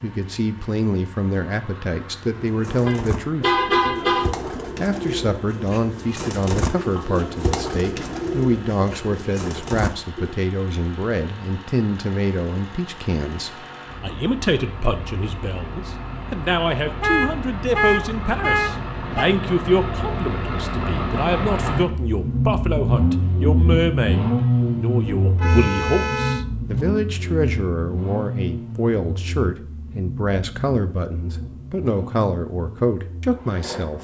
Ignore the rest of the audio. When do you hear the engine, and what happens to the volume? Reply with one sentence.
The engine can be heard from 0.0 to 33.9 s, getting louder then quieter.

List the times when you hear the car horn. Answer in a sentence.
The car horn can be heard from 2.9 to 4.3 s, from 17.0 to 19.2 s and from 25.4 to 26.4 s.